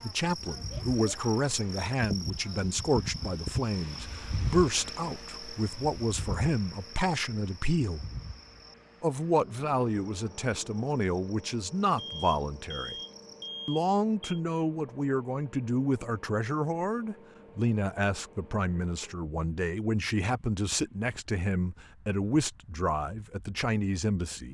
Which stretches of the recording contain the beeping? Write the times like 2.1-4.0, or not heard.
11.9-14.4.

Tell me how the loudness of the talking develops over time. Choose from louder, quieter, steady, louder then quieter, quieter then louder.
steady.